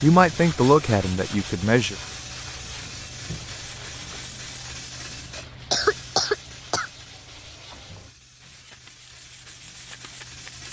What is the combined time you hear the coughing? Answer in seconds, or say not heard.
2 s.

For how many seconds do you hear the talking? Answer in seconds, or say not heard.
2 s.